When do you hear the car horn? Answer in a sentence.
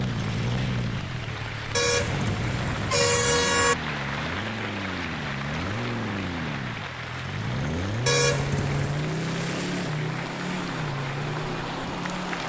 You can hear the car horn from 1.7 to 3.8 s and from 8.1 to 9.1 s.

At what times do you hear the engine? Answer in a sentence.
The engine can be heard from 0.0 to 12.4 s.